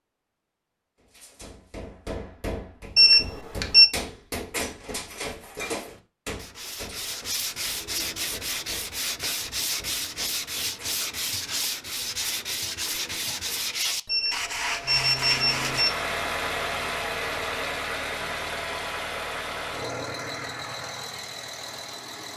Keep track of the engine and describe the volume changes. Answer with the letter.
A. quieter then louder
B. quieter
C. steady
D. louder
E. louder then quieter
B.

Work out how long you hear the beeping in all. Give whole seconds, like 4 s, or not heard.
3 s.